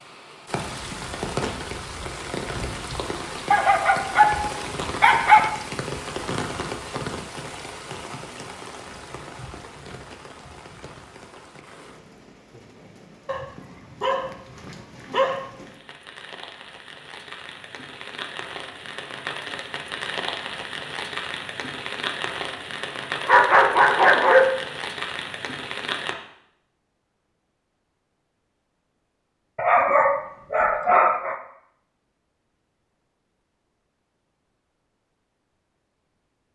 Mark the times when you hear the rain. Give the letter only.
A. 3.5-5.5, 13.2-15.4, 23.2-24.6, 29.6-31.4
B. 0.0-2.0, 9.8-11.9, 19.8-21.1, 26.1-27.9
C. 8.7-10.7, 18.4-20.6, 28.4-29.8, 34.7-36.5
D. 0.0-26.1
D.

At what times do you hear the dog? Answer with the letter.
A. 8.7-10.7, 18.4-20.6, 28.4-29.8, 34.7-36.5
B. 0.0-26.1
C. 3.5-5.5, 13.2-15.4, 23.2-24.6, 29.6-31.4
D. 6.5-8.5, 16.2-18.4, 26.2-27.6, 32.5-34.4
C.